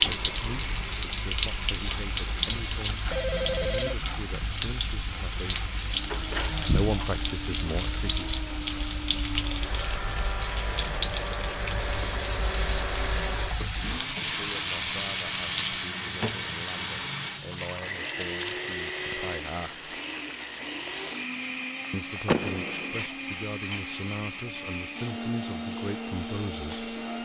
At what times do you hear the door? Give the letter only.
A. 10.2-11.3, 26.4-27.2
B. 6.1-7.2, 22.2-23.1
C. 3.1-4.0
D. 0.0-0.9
B.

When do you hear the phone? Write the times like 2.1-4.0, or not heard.
3.1-4.0.